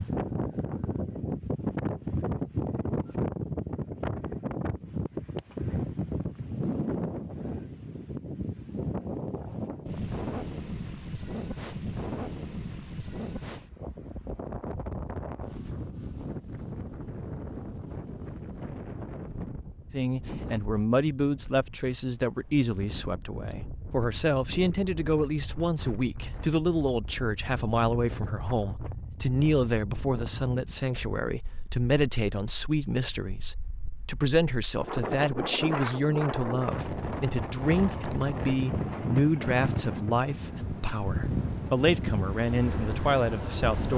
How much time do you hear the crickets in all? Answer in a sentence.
The crickets can't be heard in this clip.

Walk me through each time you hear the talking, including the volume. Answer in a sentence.
The talking can be heard from 19.9 to 43.9 s, at a steady volume.